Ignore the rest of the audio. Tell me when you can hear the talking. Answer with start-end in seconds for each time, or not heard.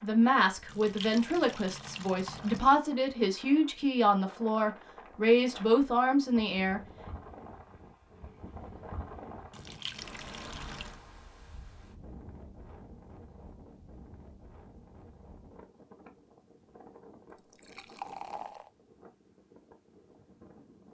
0.0-6.8.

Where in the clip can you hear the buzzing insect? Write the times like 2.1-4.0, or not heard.
not heard.